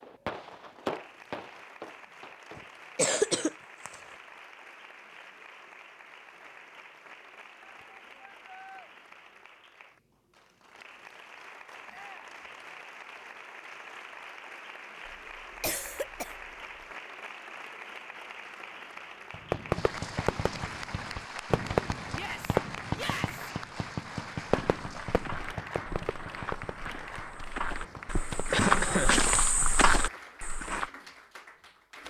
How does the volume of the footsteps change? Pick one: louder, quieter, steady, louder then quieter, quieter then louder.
louder.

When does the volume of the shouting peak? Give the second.
23 s.